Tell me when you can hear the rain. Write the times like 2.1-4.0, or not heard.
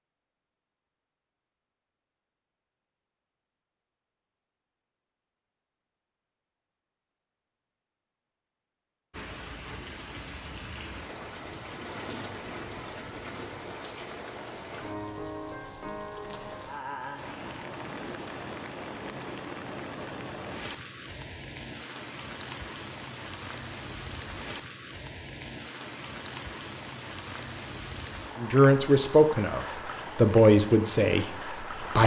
9.1-32.0.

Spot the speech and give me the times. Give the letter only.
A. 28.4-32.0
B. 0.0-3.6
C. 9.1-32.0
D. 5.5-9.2
A.